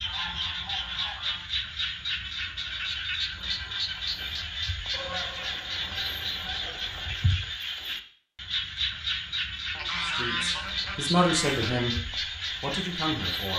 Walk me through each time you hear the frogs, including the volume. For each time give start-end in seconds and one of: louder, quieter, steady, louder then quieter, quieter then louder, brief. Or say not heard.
0.0-13.5 steady.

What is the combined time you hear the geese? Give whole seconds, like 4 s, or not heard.
6 s.